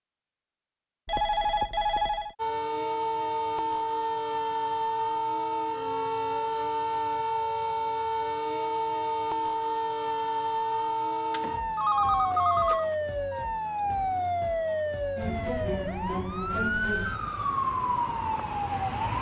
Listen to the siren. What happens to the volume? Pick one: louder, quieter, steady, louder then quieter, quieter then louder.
steady.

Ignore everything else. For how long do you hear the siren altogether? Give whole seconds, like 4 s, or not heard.
17 s.